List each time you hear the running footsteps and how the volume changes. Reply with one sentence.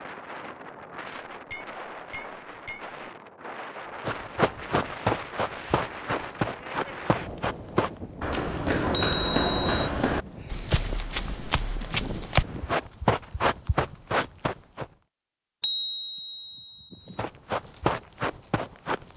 The running footsteps can be heard from 4.0 to 14.8 s, at a steady volume; and briefly from 17.1 to 19.1 s.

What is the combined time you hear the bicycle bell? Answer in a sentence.
The bicycle bell can be heard for 4 seconds in total.